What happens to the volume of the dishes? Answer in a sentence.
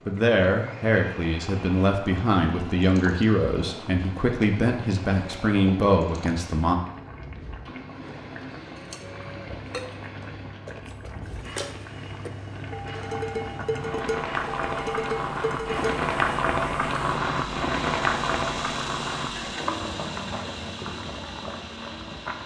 The loudness of the dishes goes up.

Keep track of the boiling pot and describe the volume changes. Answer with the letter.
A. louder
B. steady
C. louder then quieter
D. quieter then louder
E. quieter
A.